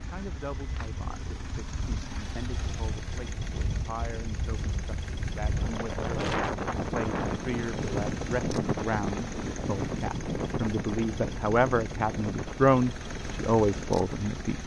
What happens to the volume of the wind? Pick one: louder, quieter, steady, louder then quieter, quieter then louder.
louder then quieter.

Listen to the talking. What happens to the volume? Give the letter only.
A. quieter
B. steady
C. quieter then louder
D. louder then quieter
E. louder
E.